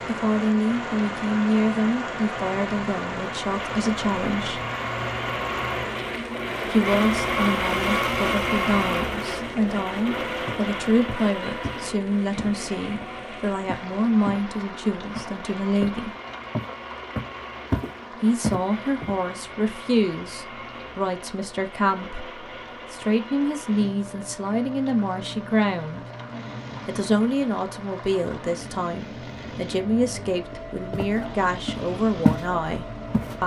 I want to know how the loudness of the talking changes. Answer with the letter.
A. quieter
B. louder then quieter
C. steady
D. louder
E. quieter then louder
C.